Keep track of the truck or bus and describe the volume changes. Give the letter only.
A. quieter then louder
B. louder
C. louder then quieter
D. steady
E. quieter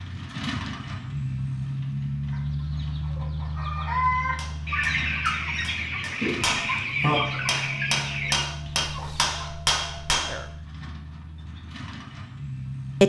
E.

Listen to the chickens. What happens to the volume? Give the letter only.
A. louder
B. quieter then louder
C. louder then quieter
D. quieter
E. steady
C.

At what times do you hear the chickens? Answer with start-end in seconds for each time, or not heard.
2.3-9.5.